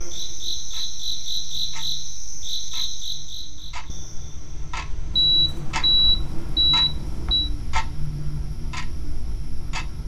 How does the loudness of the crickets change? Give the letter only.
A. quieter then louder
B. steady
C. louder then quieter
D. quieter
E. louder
A.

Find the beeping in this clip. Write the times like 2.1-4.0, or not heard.
5.1-7.5.